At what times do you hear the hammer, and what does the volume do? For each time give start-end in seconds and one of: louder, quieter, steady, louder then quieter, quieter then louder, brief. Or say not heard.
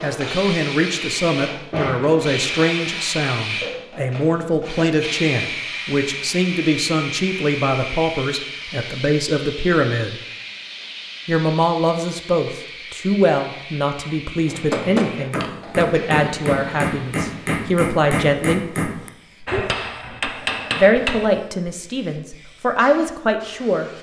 14.4-21.3 steady.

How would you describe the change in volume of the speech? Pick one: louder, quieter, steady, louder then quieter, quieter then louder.
steady.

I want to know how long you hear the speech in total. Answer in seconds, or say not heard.
21 s.